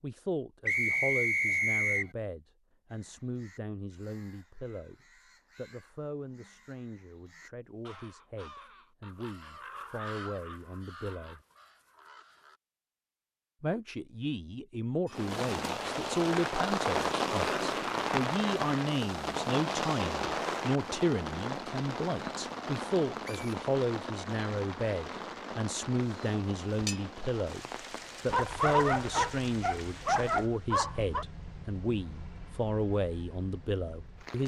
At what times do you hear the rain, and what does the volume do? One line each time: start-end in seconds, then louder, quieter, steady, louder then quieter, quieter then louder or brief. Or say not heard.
15.1-34.4 quieter.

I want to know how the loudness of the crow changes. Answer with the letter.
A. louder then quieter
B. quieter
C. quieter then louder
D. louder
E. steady
A.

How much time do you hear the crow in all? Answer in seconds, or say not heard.
10 s.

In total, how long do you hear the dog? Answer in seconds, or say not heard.
3 s.